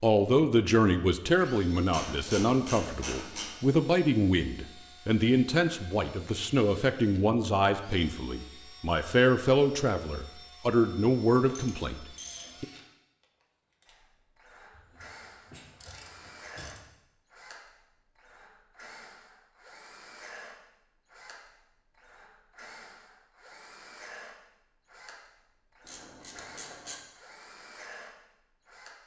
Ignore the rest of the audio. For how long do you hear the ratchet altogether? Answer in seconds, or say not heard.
6 s.